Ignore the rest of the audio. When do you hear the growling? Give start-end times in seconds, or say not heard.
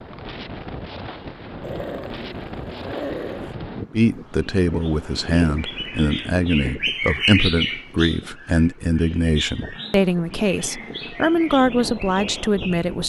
1.6-3.5, 9.7-11.1.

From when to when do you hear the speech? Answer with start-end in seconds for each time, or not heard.
3.9-13.0.